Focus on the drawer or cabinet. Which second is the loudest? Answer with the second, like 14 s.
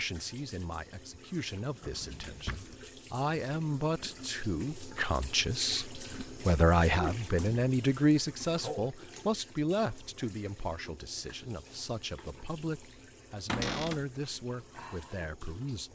14 s.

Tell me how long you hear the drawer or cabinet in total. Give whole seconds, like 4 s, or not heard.
2 s.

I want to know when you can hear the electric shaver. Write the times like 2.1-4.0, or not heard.
not heard.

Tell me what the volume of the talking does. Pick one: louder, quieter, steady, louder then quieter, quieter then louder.
louder then quieter.